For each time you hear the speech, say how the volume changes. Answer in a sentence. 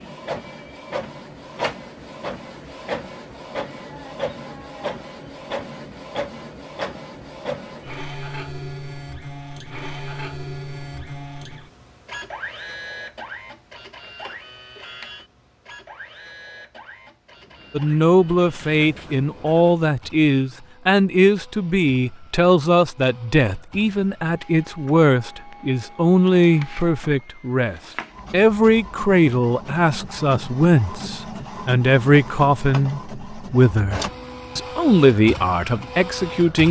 The speech can be heard from 17.7 to 36.6 s, at a steady volume.